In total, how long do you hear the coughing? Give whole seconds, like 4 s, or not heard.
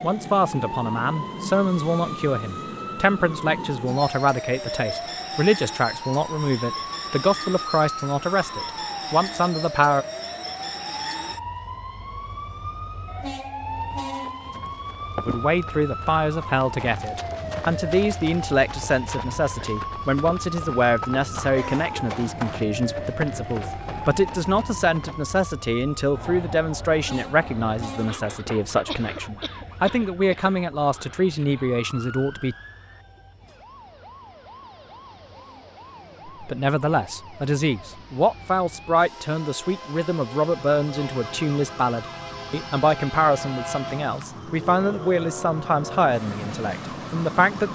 2 s.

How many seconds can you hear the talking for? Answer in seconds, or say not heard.
39 s.